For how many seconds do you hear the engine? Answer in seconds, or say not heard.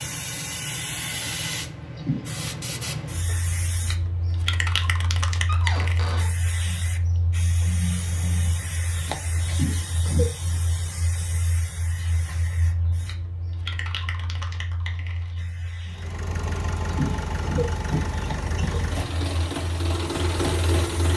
5 s.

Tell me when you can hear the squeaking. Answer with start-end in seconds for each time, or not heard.
5.5-6.3.